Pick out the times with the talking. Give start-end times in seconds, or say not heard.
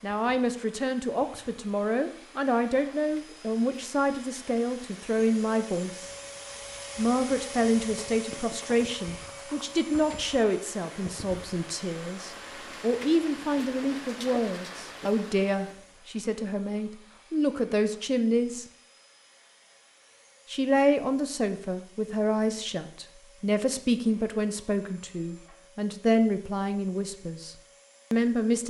0.0-6.1, 7.0-18.6, 20.5-28.6.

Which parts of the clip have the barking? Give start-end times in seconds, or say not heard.
not heard.